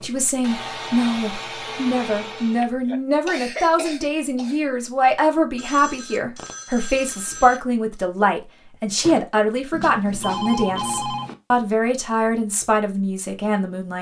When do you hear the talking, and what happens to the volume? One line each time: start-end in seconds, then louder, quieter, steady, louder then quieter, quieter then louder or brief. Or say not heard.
0.0-13.9 steady.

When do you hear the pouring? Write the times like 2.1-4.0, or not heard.
not heard.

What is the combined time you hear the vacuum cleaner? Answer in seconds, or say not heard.
3 s.